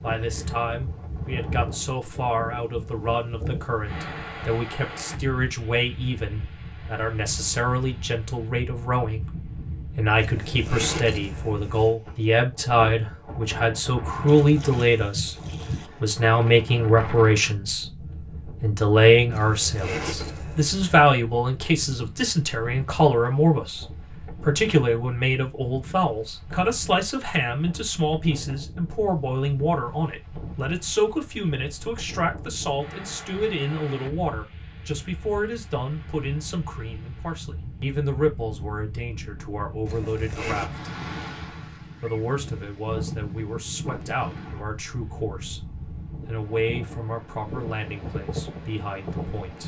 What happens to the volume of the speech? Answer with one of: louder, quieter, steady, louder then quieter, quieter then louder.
louder then quieter.